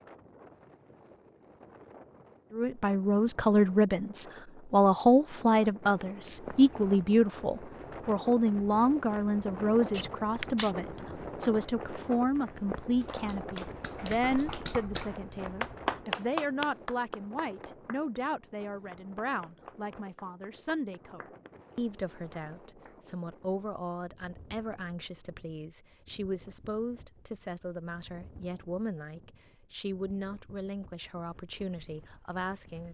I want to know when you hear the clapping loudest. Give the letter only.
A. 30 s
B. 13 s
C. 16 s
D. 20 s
C.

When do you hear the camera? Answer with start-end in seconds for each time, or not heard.
9.9-10.8.